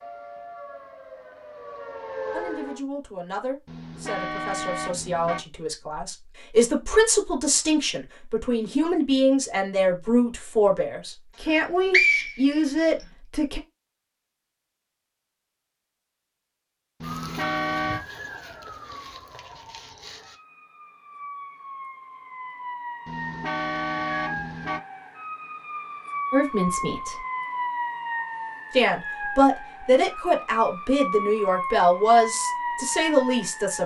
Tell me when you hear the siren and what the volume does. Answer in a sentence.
You can hear the siren briefly from 0.0 to 2.8 s; and from 17.0 to 33.8 s, getting louder.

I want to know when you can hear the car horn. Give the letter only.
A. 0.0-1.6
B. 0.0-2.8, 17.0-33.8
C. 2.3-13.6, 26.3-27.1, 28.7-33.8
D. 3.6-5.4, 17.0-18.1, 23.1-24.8
D.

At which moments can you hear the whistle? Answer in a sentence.
The whistle can be heard from 11.4 to 13.1 s.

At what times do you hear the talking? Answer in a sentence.
The talking can be heard from 2.3 to 13.6 s, from 26.3 to 27.1 s and from 28.7 to 33.8 s.